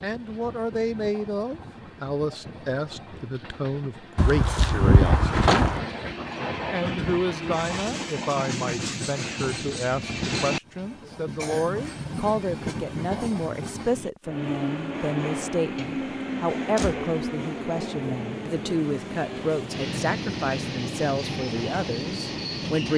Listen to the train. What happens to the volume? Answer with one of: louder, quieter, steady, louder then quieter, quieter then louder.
louder.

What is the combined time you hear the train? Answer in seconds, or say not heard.
23 s.